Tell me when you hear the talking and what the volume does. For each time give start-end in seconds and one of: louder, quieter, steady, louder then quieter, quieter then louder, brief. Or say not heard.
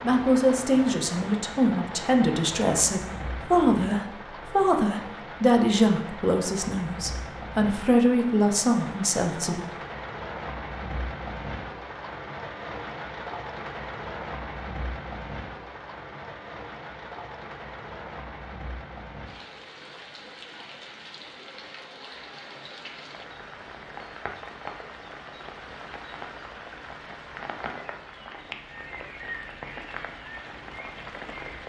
0.0-9.7 steady.